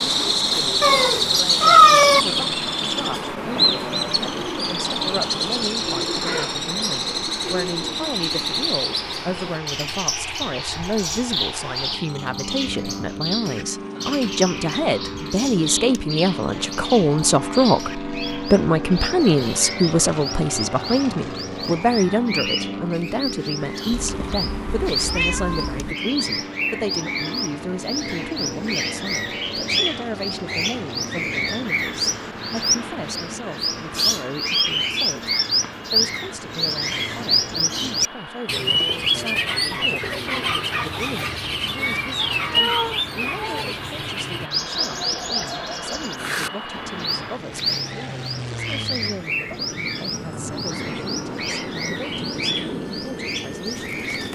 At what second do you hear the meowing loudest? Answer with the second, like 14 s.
2 s.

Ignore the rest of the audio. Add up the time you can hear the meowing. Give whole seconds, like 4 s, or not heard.
5 s.